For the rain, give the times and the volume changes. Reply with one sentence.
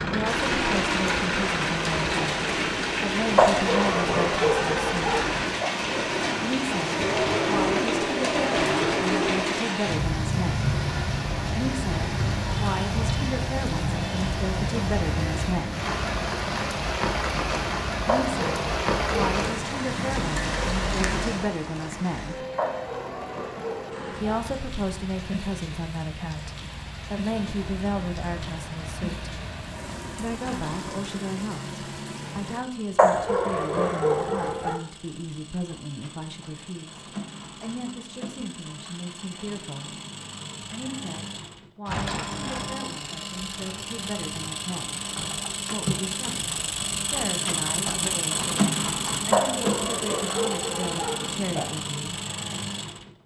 The rain can be heard from 0.0 to 32.6 s, getting quieter.